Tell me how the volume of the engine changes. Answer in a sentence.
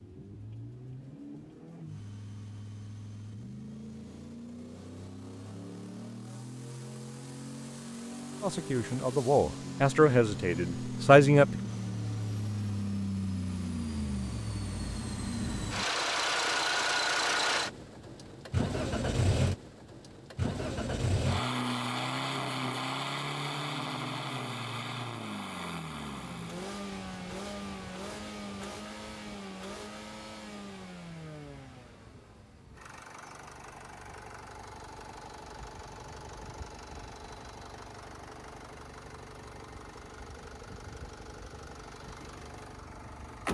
The volume of the engine goes up, then down.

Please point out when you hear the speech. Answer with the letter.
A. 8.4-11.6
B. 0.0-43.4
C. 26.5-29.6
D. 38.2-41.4
A.